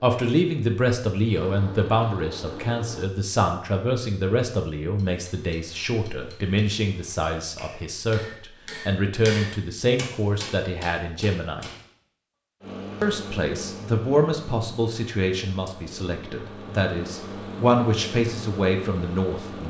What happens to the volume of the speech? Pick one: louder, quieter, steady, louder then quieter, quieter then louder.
steady.